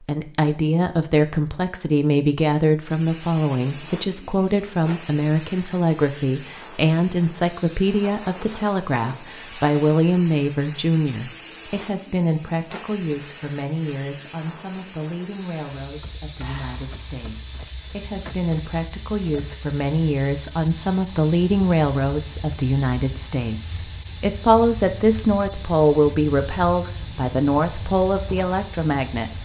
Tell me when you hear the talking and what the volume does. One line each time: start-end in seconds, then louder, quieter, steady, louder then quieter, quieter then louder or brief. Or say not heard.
0.0-29.4 quieter then louder.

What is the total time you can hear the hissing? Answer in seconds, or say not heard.
27 s.